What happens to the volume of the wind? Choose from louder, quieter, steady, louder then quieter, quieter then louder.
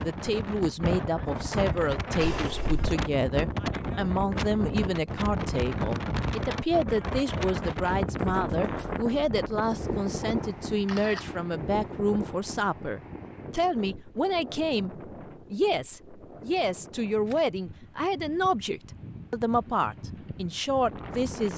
quieter.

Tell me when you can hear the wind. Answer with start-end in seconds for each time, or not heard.
0.0-21.5.